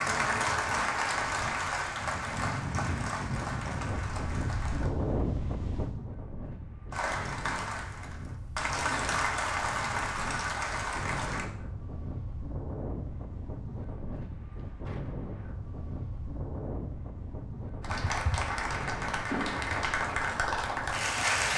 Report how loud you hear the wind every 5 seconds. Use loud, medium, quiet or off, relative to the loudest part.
loud, loud, loud, loud, medium.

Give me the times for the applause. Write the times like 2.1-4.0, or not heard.
0.0-4.9, 6.9-11.5, 17.8-21.5.